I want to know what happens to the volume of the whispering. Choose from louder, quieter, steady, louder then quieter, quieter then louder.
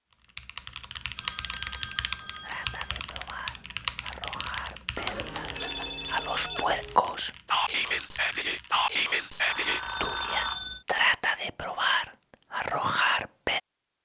louder.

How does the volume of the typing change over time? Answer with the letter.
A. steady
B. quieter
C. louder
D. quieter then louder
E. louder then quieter
B.